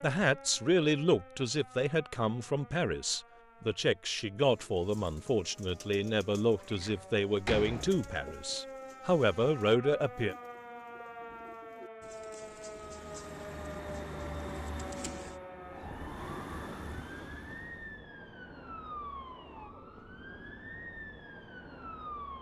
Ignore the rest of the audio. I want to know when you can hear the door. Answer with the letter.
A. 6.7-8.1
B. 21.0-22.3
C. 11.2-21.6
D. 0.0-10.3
A.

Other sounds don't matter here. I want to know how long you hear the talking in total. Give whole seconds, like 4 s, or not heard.
10 s.